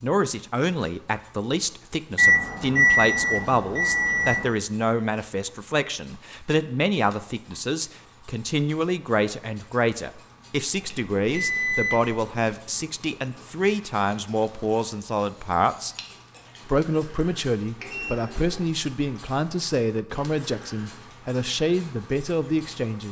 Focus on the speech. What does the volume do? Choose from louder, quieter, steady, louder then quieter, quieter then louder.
steady.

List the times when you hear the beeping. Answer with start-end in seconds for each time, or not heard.
2.1-4.5, 10.8-12.5, 17.8-18.6.